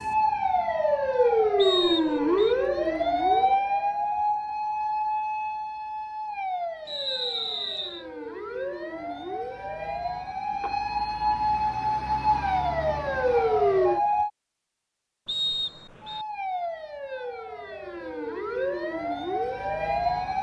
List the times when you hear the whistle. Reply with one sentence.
The whistle can be heard from 1.6 to 2.5 s, from 6.8 to 8.1 s and from 15.2 to 16.2 s.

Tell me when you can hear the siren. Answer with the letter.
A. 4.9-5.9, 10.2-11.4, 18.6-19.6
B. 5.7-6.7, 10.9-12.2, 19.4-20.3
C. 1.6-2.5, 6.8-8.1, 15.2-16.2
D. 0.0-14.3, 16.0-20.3
D.